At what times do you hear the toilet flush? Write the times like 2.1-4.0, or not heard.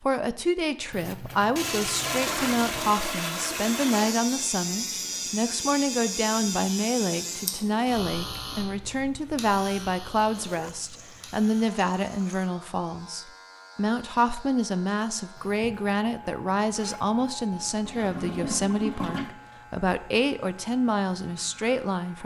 1.6-4.2, 10.3-12.5, 17.6-19.3.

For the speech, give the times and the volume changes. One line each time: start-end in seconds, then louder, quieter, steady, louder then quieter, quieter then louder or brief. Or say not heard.
0.0-22.2 steady.